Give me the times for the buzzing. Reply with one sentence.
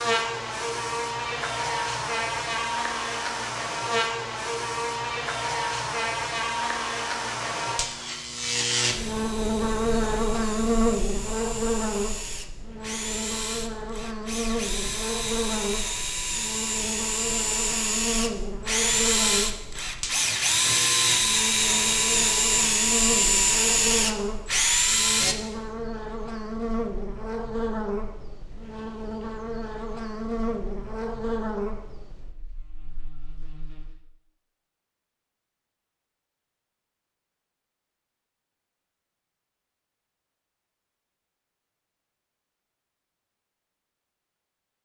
You can hear the buzzing from 0.0 to 34.0 s.